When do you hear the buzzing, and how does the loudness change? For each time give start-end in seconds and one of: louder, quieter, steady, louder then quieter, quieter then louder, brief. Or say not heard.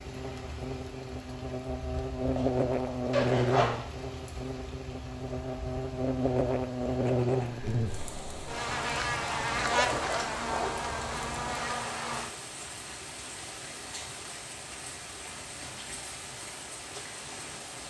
0.0-12.3 steady.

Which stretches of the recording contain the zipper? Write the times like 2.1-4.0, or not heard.
2.4-3.8, 9.6-10.7.